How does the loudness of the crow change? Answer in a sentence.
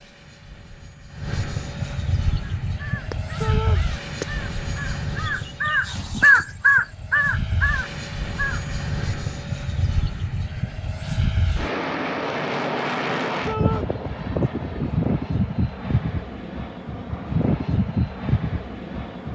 The loudness of the crow goes up, then down.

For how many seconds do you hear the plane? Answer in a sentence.
The plane can be heard for 19 seconds in total.